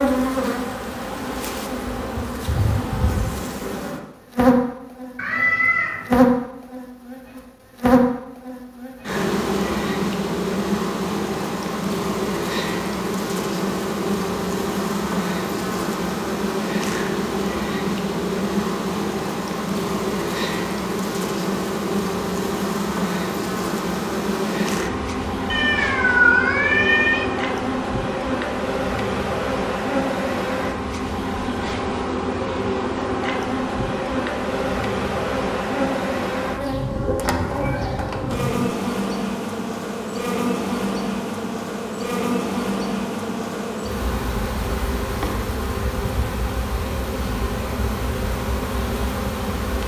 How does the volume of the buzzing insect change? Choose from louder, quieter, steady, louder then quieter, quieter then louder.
steady.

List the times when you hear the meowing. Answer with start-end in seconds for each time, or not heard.
5.2-6.0, 25.5-27.3, 36.7-38.7.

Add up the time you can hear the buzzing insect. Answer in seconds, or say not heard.
50 s.